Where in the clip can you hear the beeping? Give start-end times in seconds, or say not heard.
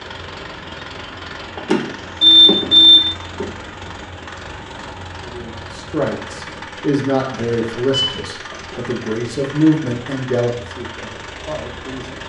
1.6-3.5, 7.9-8.6.